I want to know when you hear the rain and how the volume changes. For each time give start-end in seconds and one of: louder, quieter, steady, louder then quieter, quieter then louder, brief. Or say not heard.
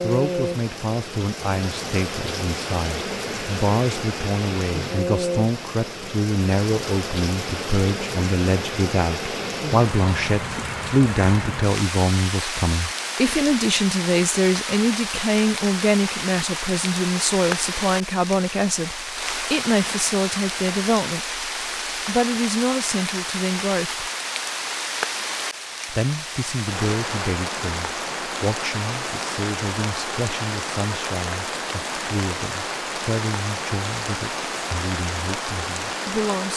0.0-36.5 steady.